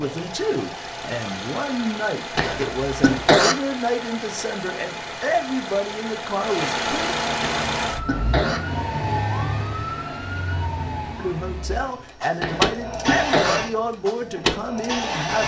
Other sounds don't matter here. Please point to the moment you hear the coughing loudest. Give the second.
3 s.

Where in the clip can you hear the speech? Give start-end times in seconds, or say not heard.
0.0-7.2, 11.2-15.4.